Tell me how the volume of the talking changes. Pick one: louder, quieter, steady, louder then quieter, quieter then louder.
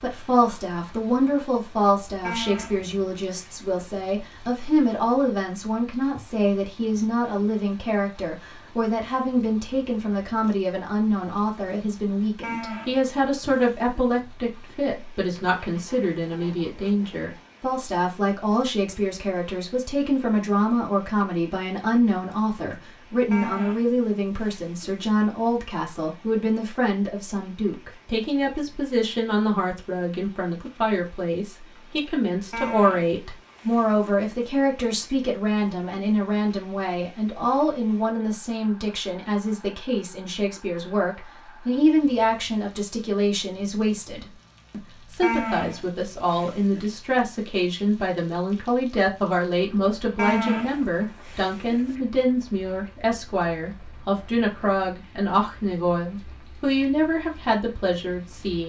steady.